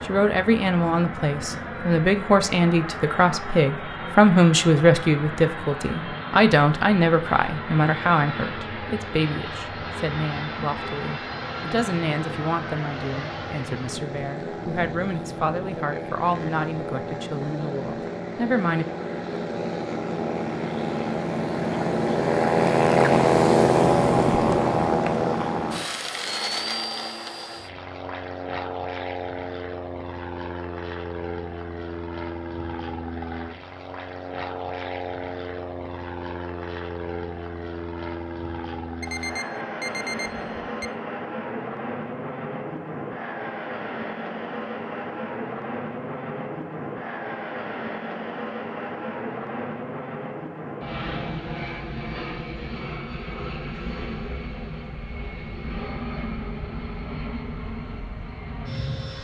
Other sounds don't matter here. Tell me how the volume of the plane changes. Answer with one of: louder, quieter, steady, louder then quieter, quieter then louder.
louder then quieter.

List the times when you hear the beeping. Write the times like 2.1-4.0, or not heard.
39.0-40.9.